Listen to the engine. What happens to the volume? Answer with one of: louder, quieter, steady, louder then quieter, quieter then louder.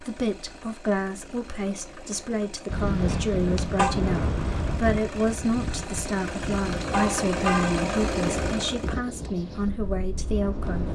louder.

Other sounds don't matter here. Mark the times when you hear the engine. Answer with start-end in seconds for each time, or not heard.
0.0-9.0.